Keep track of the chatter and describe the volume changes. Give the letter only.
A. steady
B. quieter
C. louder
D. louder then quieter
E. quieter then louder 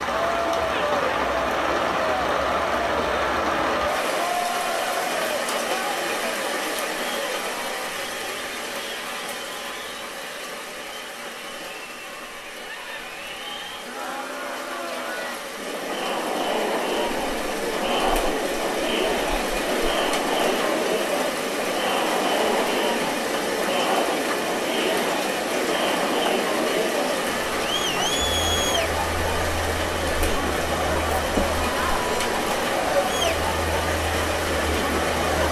E.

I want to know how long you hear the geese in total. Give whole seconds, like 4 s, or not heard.
not heard.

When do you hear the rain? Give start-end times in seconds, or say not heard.
0.0-35.4.